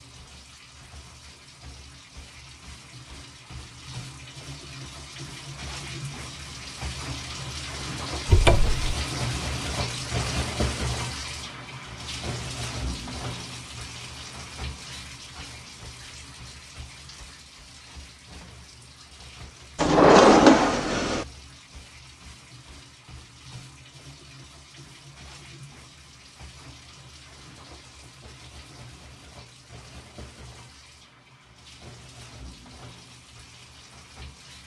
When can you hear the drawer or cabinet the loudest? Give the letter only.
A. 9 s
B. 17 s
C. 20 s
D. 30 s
C.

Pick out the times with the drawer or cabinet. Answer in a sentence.
The drawer or cabinet can be heard from 8.2 to 8.9 s and from 19.8 to 21.2 s.